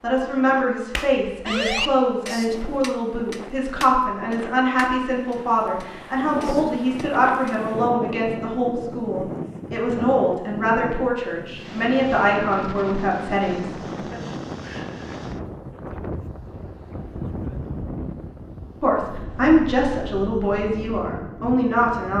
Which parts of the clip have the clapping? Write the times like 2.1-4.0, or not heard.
0.9-7.6.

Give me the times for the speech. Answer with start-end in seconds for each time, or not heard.
0.0-14.2, 18.8-22.1.